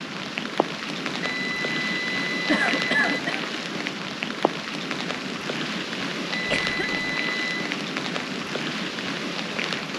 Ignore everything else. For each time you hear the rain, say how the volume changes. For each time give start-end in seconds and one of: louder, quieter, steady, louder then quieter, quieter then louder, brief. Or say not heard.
0.0-9.9 steady.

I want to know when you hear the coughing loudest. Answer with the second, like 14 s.
3 s.